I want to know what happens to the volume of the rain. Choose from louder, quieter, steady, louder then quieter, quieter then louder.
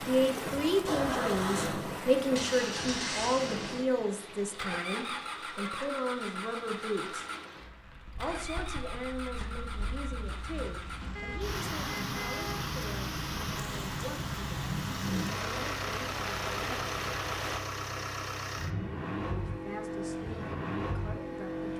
quieter then louder.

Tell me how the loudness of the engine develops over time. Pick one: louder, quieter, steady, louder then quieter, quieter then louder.
quieter then louder.